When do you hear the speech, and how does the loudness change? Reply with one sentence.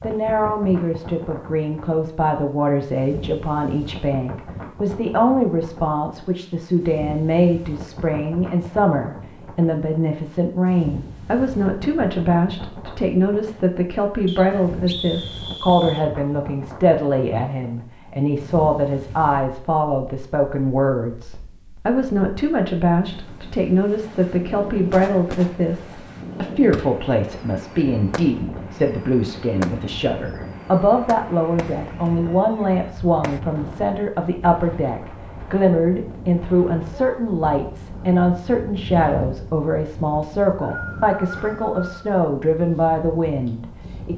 The speech can be heard from 0.0 to 44.1 s, at a steady volume.